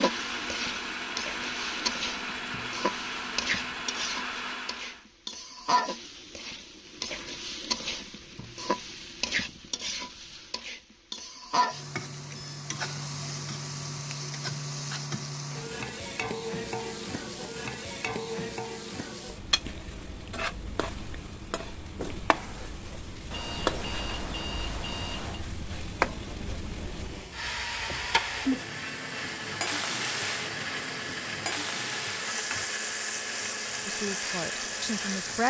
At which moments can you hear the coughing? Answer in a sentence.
The coughing can't be heard in this clip.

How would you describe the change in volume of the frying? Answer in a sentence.
The loudness of the frying stays about the same.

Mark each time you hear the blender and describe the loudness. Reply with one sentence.
The blender can be heard from 0.0 to 5.0 s, at a steady volume; and from 26.9 to 35.4 s, at a steady volume.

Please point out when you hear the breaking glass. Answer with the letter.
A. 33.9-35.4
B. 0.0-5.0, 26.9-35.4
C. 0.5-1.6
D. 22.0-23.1
D.